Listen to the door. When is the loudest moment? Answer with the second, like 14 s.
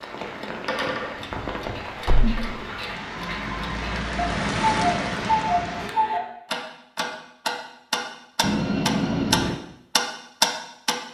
9 s.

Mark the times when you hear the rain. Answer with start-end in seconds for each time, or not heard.
0.0-5.9.